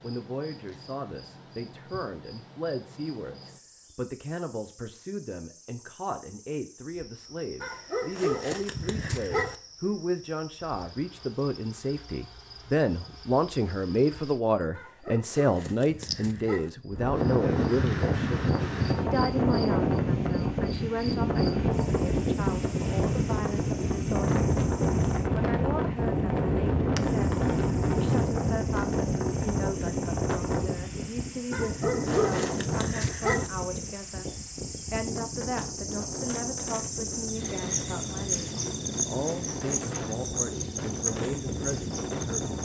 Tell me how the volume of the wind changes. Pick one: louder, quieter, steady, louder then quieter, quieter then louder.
quieter.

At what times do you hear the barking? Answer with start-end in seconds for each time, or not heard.
7.6-9.6, 14.7-16.7, 31.5-33.5.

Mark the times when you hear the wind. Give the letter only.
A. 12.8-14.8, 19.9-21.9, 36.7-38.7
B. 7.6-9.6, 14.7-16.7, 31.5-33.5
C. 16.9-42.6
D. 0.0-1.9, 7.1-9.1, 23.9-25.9
C.